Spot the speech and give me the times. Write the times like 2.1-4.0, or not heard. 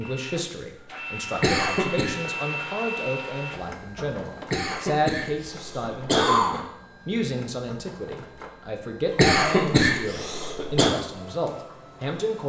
0.0-12.4.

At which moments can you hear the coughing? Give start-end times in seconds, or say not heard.
1.4-2.1, 4.5-6.6, 9.2-10.9.